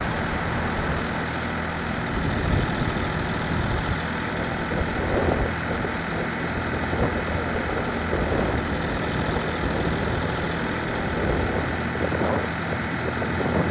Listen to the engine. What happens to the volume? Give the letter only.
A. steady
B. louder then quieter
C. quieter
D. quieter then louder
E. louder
A.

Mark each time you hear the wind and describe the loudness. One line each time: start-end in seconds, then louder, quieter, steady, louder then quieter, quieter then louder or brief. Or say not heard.
0.0-13.6 steady.